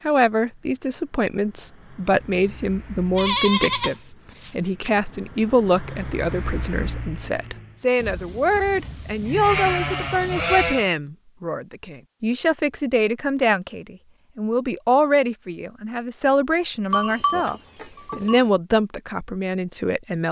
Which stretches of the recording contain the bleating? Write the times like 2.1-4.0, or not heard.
3.1-5.0, 8.0-10.9, 16.9-18.4.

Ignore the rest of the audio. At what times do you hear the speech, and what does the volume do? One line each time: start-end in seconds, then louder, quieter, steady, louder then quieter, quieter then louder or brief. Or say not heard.
0.1-20.2 steady.